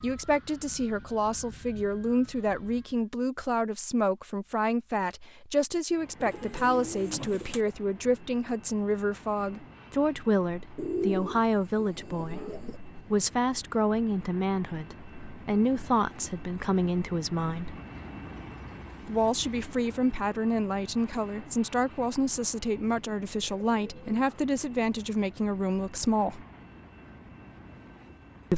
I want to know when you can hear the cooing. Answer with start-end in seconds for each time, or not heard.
6.2-7.6, 10.8-12.8, 22.8-24.2.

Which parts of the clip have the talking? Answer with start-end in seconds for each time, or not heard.
0.0-17.8, 19.1-26.4.